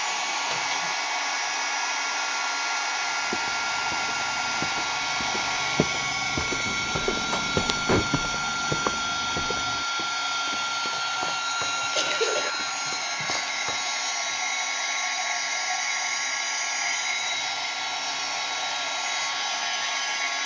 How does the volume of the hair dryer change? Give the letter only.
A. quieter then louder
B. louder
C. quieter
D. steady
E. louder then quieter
D.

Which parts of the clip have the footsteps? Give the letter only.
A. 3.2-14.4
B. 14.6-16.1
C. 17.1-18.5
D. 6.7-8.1
A.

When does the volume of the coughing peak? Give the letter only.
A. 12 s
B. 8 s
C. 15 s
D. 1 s
A.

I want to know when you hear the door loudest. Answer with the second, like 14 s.
8 s.